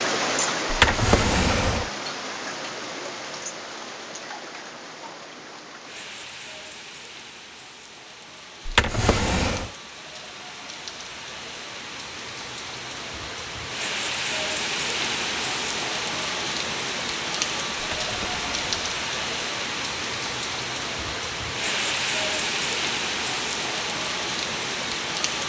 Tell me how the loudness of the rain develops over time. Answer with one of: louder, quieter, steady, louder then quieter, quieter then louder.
quieter then louder.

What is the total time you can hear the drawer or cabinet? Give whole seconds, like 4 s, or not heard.
3 s.